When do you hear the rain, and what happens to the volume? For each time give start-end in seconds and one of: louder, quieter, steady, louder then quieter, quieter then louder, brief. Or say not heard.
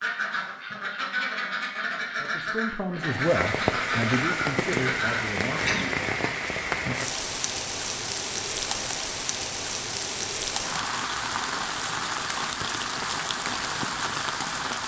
3.1-14.8 steady.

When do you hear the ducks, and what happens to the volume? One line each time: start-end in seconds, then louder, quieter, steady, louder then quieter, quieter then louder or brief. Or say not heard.
0.0-6.5 steady.